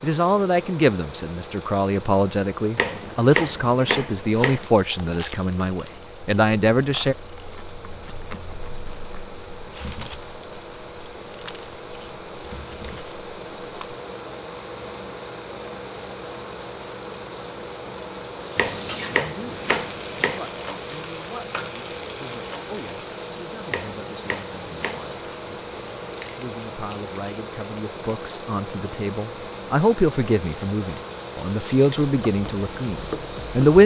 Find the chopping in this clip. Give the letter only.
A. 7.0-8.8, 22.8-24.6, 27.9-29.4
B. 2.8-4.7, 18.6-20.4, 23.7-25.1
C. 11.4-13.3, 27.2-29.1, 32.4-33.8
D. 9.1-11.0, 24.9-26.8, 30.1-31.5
B.